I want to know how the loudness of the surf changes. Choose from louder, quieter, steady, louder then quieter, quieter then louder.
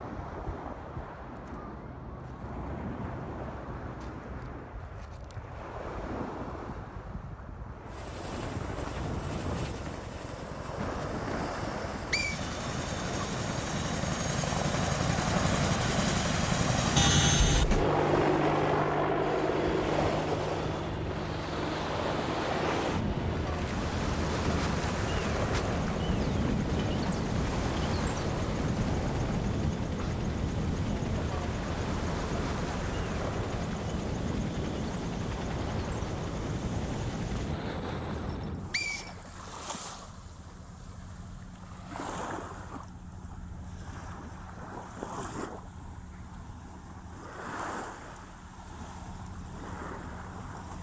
louder then quieter.